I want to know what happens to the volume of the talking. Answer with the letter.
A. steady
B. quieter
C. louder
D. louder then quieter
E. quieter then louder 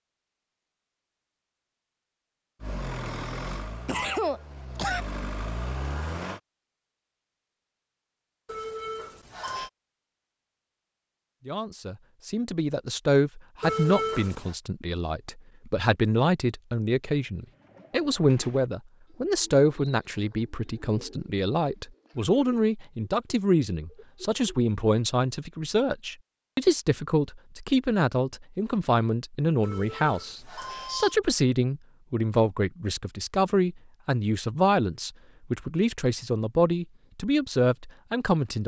A.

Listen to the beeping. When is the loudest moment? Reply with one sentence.
The loudest moment of the beeping is at 14 seconds.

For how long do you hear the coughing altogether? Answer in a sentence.
The coughing can be heard for 2 seconds in total.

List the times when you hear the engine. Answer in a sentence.
The engine can be heard from 2.6 to 6.4 s.